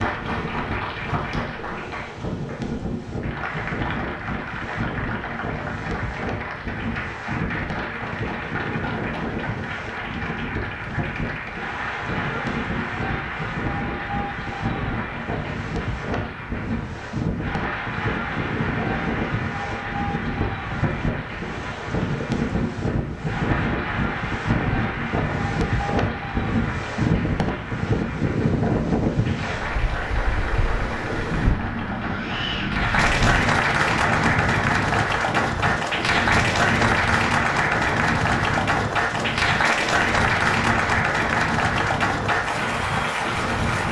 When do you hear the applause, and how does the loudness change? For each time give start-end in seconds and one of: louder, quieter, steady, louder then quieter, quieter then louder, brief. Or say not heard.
0.0-43.8 louder.